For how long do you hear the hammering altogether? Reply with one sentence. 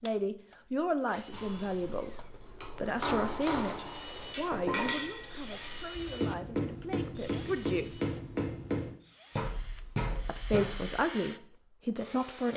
You can hear the hammering for 10 seconds altogether.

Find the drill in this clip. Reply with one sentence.
You can hear the drill from 0.0 to 12.5 s.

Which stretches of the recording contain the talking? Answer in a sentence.
You can hear the talking from 0.0 to 8.0 s and from 10.2 to 12.5 s.